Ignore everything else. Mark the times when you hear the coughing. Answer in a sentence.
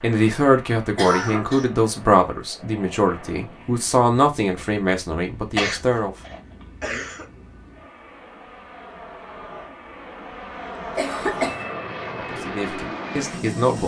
You can hear the coughing from 0.9 to 1.6 s, from 5.5 to 7.2 s and from 10.9 to 11.7 s.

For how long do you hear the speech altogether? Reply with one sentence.
You can hear the speech for 8 seconds altogether.